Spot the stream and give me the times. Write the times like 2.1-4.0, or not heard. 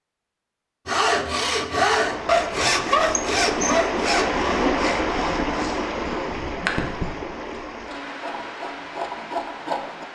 1.9-10.1.